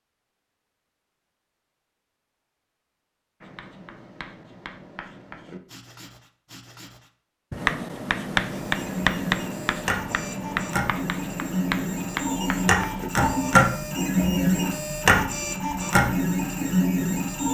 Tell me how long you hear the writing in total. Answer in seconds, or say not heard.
10 s.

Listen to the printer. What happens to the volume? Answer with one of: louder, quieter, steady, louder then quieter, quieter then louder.
louder.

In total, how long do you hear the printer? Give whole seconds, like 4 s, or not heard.
9 s.